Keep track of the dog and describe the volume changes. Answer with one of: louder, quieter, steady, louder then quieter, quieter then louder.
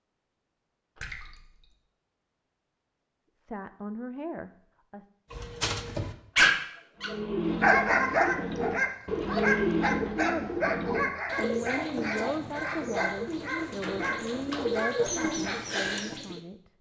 quieter.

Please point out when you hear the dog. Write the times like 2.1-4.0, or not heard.
5.3-15.6.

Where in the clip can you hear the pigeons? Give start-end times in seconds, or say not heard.
7.0-16.4.